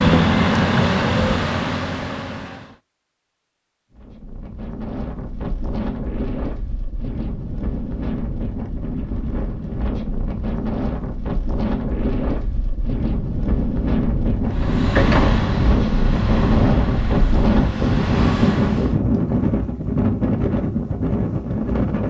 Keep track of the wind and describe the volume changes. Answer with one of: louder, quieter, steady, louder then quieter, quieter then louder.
louder.